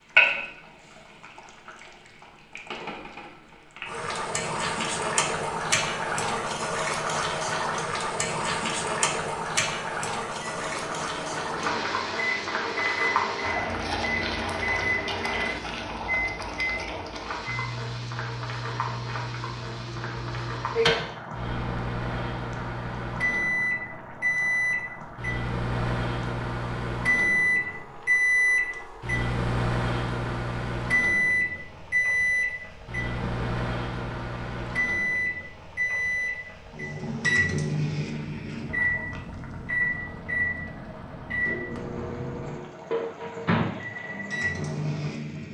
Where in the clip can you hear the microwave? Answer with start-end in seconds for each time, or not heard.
10.3-45.4.